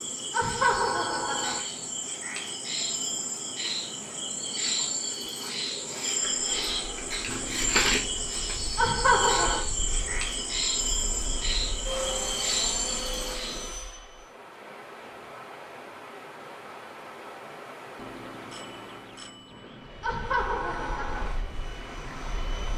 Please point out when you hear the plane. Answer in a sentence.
You can hear the plane from 6.3 to 14.3 s and from 19.8 to 22.7 s.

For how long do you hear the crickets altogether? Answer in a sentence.
The crickets can be heard for 14 seconds in total.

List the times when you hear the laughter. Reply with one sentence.
The laughter can be heard from 0.3 to 1.6 s, from 8.8 to 9.7 s and from 20.0 to 21.3 s.